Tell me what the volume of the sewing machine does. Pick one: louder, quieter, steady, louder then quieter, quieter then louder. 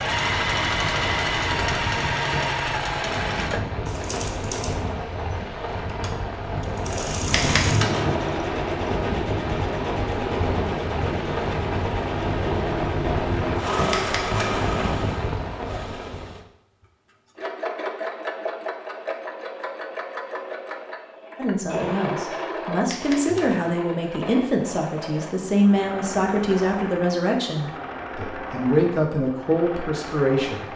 quieter.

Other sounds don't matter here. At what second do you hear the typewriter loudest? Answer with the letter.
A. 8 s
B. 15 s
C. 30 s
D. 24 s
A.